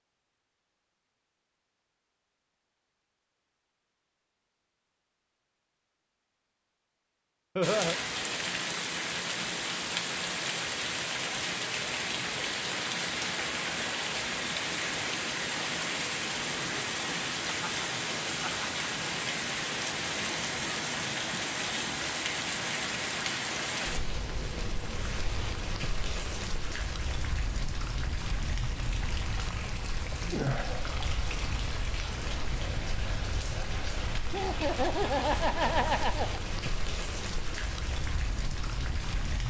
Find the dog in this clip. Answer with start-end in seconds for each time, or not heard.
not heard.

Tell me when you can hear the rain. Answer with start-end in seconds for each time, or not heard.
7.6-39.4.